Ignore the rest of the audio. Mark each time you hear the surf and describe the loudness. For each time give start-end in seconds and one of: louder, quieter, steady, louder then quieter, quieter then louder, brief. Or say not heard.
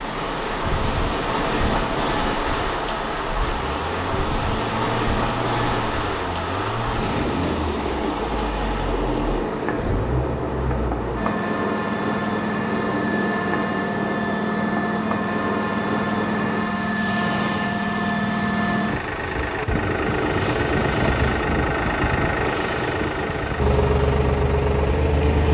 0.0-25.4 quieter.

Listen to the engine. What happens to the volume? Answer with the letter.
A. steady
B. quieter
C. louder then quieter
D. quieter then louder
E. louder
E.